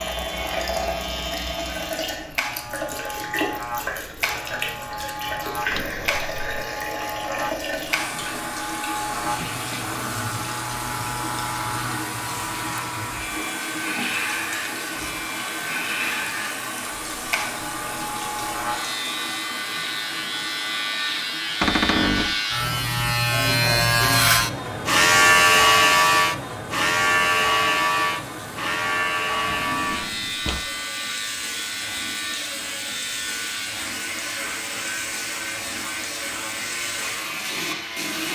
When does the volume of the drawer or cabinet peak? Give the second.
22 s.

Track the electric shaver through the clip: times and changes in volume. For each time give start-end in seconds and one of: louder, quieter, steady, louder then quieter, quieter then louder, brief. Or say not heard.
0.0-38.3 louder then quieter.